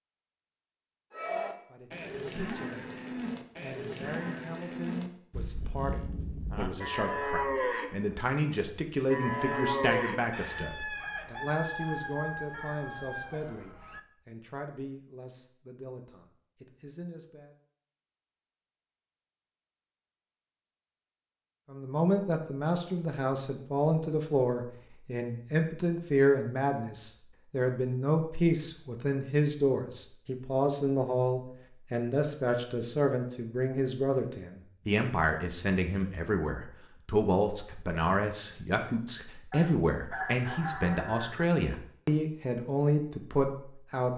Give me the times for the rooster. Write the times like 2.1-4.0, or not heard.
10.3-14.0, 39.5-41.5.